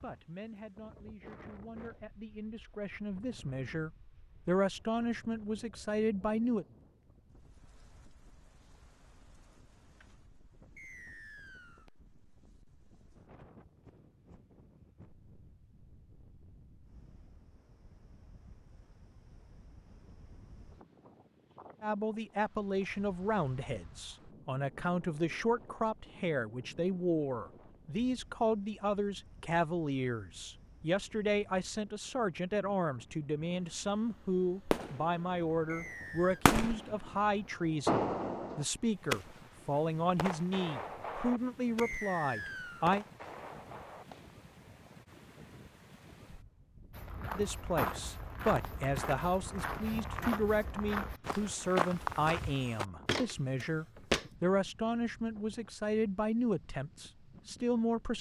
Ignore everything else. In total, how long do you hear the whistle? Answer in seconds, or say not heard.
3 s.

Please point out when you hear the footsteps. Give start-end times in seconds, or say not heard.
46.9-54.3.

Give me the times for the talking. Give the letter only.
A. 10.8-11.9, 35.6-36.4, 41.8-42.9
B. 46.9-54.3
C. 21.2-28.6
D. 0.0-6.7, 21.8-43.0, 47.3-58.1
D.